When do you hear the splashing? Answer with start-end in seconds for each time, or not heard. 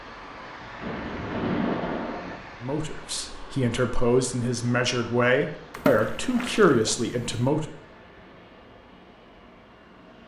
0.8-2.4, 5.7-7.5.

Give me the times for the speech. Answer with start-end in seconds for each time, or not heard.
2.6-7.7.